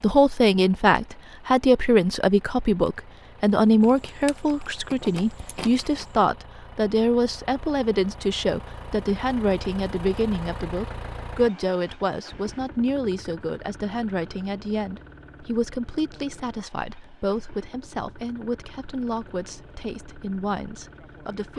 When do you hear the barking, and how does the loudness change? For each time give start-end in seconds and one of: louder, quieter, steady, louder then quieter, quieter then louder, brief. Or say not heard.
not heard.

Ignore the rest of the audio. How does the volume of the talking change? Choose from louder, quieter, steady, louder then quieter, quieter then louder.
quieter.